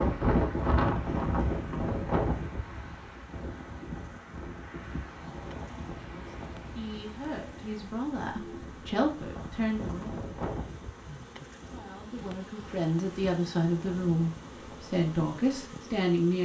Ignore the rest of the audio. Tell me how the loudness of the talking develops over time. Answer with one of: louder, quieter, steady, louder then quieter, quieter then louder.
louder.